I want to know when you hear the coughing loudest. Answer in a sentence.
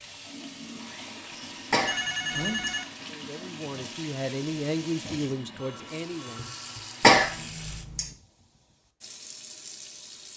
The volume of the coughing peaks at 7 seconds.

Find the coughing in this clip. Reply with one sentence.
You can hear the coughing from 1.7 to 2.8 s and from 7.0 to 8.1 s.